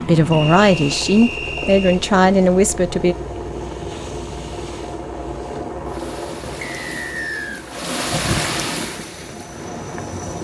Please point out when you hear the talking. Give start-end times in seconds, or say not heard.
0.1-3.1.